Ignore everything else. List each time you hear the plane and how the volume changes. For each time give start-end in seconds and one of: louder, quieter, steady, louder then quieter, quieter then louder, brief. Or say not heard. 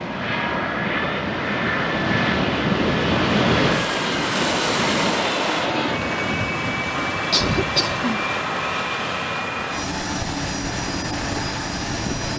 0.0-12.3 steady.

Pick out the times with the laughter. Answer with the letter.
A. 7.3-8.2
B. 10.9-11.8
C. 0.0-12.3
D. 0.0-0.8
A.